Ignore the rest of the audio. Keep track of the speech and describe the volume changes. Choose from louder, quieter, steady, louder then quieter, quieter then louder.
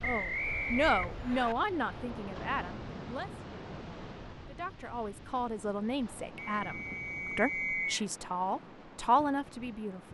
quieter then louder.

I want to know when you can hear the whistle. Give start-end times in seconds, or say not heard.
0.0-1.6, 6.3-8.1.